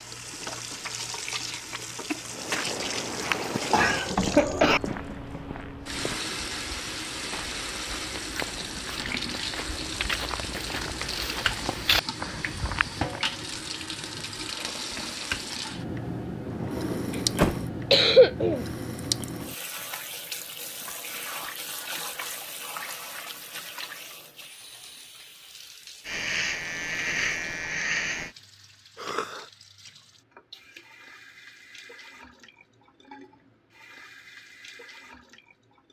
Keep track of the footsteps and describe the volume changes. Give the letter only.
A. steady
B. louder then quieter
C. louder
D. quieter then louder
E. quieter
D.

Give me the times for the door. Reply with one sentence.
You can hear the door from 16.4 to 17.6 s.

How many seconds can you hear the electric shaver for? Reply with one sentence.
You can hear the electric shaver for 2 seconds altogether.